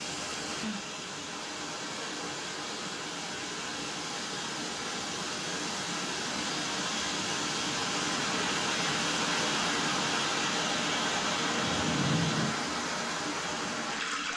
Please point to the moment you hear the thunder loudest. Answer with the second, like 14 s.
12 s.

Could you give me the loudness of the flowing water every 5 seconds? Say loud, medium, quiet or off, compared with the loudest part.
medium, loud, loud.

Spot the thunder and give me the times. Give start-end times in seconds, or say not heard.
10.6-12.6.